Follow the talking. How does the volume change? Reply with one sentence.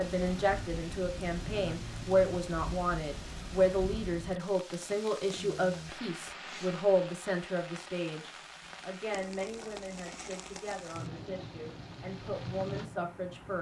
The loudness of the talking goes down.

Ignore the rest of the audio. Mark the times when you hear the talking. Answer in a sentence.
The talking can be heard from 0.0 to 13.5 s.